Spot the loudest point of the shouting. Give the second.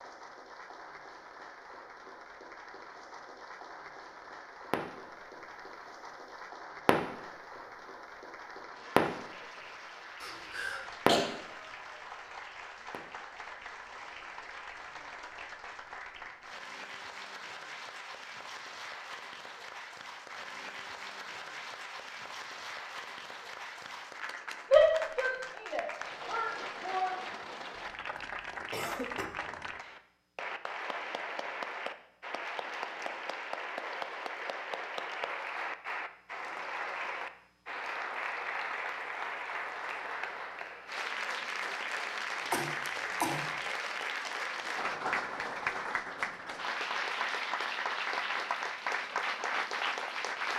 25 s.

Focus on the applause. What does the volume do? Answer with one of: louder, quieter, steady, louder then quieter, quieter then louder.
louder.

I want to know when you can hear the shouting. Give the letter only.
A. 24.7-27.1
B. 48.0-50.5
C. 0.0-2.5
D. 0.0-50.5
A.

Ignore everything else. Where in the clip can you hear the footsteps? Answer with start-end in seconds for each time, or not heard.
not heard.